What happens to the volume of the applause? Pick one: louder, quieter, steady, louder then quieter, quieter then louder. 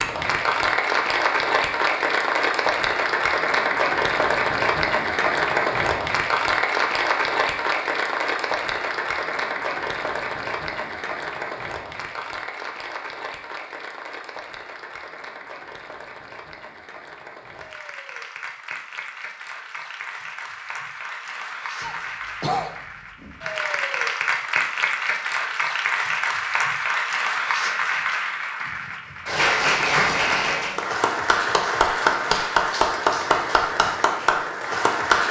quieter then louder.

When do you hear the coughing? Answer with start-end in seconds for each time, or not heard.
21.8-23.4.